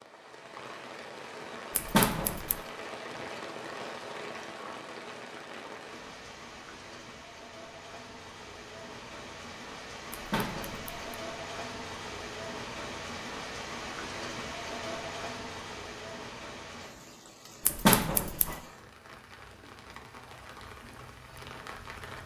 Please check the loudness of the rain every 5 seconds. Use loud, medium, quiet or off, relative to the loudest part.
loud, medium, loud, medium, medium.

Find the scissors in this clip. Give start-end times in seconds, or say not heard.
1.8-2.6, 10.1-11.2, 17.6-18.6.